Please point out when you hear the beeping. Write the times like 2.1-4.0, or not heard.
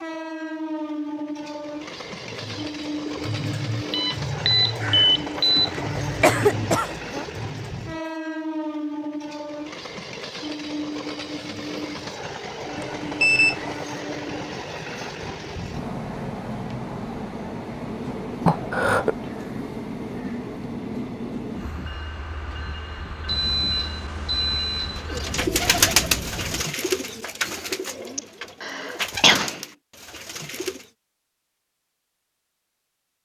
3.9-5.7, 12.8-13.8, 23.2-25.1.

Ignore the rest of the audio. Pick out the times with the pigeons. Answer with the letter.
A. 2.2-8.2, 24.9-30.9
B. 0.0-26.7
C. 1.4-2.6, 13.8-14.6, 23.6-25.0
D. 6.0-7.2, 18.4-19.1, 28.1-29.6
A.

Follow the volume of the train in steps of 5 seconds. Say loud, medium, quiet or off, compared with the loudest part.
loud, loud, loud, loud, loud, loud, off.